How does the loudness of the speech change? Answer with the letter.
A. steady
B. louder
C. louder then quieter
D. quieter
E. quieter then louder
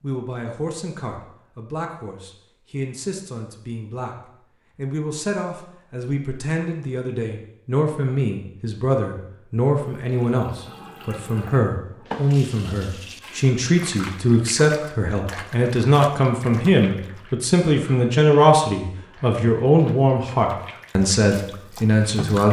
B.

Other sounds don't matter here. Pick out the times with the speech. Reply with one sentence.
You can hear the speech from 0.0 to 4.2 s and from 4.8 to 22.4 s.